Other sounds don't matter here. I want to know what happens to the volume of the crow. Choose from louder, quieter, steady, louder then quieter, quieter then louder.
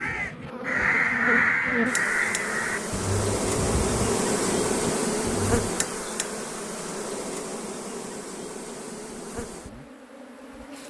quieter.